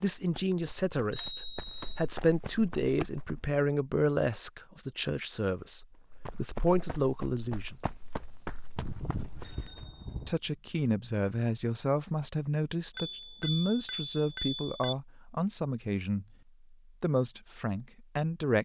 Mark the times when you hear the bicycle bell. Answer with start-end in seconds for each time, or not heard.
1.1-1.9, 8.8-10.3, 12.9-14.9.